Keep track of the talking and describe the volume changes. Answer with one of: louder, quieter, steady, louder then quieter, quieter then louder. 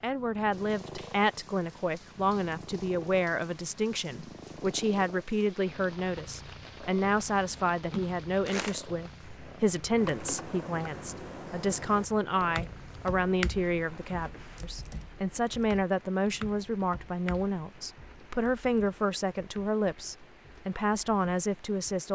steady.